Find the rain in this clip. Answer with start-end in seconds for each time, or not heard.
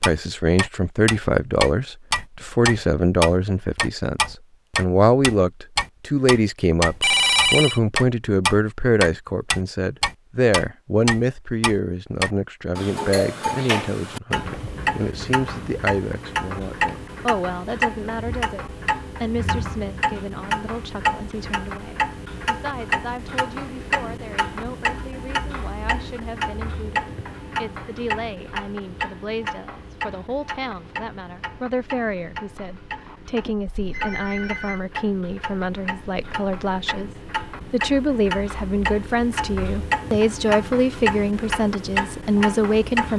not heard.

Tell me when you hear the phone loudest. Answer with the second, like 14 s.
7 s.